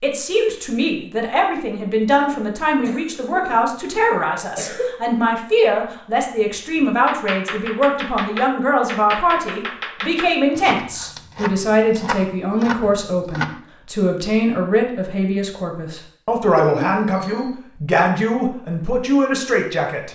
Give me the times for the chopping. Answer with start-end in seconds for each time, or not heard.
6.7-13.6.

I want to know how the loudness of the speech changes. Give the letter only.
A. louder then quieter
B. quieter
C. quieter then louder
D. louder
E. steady
E.